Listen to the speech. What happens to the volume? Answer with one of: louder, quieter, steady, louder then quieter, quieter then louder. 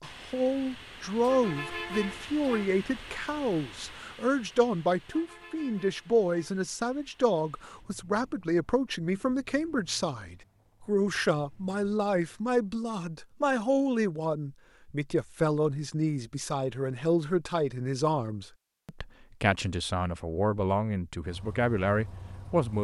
steady.